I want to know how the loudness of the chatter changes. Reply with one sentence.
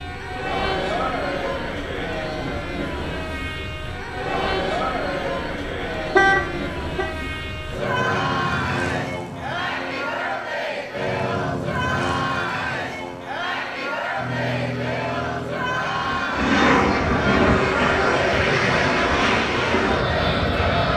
The volume of the chatter stays about the same.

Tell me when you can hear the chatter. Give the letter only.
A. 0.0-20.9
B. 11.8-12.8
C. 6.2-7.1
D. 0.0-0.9
A.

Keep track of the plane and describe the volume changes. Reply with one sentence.
The volume of the plane goes up.